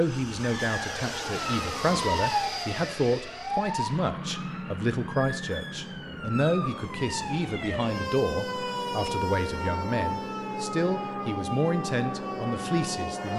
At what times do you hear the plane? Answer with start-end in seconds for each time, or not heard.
0.0-13.3.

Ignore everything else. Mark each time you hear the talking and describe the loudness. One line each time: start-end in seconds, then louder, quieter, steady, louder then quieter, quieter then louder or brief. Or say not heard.
0.0-13.3 steady.